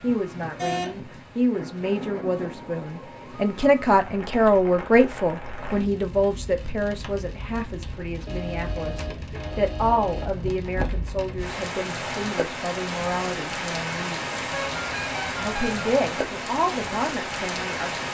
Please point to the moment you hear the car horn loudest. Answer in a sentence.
The loudest moment of the car horn is at 1 second.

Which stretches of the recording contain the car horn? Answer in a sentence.
The car horn can be heard from 0.6 to 1.0 s, from 8.2 to 10.3 s and from 14.5 to 15.8 s.